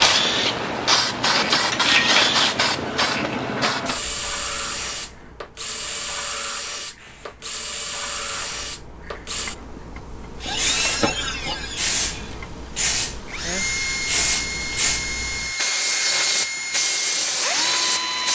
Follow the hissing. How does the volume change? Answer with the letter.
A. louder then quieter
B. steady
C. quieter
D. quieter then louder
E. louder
D.